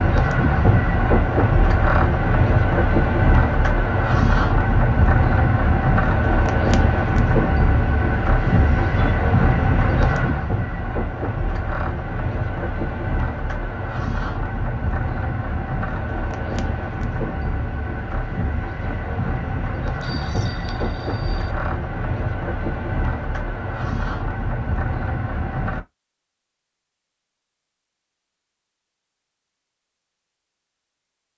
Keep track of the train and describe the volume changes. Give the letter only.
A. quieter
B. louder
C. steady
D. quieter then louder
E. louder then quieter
A.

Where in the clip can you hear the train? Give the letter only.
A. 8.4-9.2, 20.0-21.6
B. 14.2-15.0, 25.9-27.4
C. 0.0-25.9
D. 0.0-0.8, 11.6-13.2
C.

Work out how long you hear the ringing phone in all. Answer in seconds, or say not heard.
2 s.